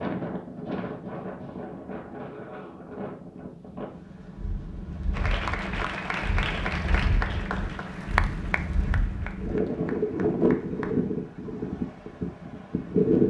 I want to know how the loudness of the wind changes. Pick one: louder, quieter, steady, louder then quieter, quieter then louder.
louder.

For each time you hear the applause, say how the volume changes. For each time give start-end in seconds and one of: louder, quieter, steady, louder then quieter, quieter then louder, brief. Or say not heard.
5.2-11.0 quieter.